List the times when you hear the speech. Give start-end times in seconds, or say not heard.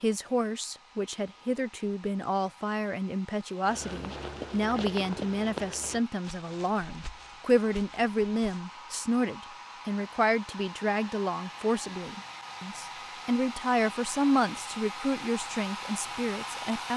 0.0-16.9.